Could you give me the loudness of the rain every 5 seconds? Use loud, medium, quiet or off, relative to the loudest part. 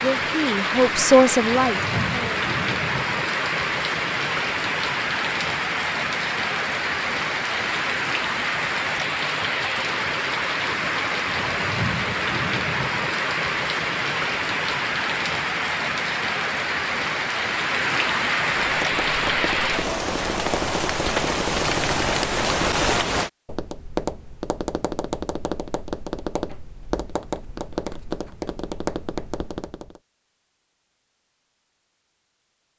loud, loud, loud, loud, loud, off, off.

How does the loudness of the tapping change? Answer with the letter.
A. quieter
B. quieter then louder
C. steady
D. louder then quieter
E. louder
C.